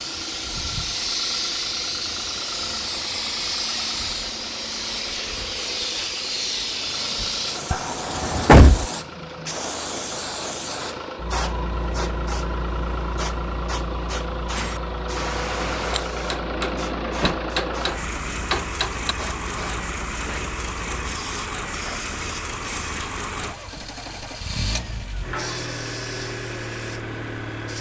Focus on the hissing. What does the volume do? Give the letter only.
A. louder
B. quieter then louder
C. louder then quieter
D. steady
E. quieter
E.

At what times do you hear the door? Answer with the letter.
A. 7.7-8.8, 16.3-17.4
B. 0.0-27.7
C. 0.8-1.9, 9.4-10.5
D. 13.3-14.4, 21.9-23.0
A.